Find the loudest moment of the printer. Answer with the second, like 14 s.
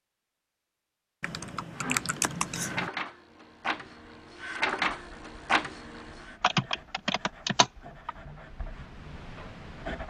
5 s.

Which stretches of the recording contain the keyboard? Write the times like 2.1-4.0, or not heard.
1.2-2.9, 6.4-8.1.